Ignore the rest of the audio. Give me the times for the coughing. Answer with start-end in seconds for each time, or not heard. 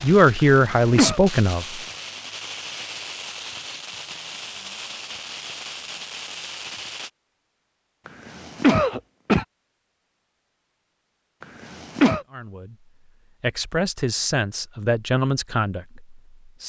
0.6-1.2, 8.1-9.4, 11.4-12.2.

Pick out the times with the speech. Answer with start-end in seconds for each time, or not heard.
0.0-1.8, 12.3-16.6.